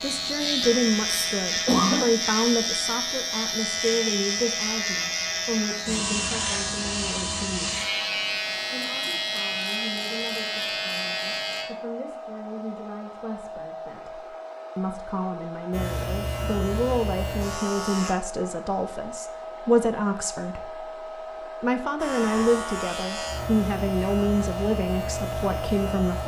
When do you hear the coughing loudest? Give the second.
2 s.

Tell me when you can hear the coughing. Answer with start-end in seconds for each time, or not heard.
0.4-2.0.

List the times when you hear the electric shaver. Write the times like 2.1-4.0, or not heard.
0.0-11.7, 15.7-18.1, 21.9-26.2.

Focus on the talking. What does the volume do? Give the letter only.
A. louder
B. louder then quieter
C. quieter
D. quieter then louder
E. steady
D.